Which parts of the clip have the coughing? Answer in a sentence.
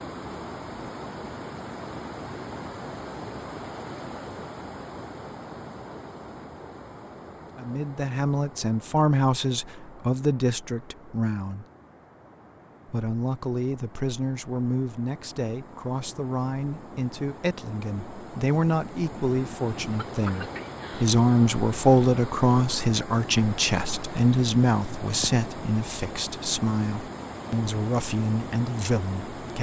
The coughing can be heard from 19.9 to 21.1 s.